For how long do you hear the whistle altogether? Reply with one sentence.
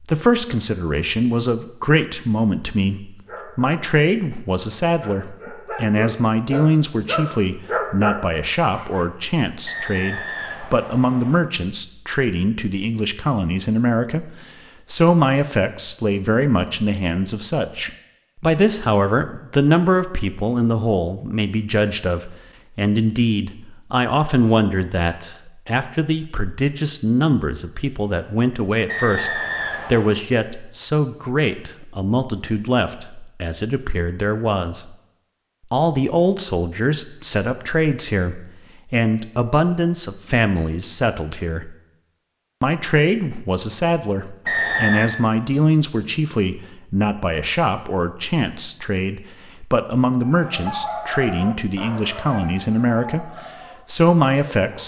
You can hear the whistle for 4 seconds altogether.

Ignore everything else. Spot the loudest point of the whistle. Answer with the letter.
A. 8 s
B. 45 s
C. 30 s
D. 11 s
B.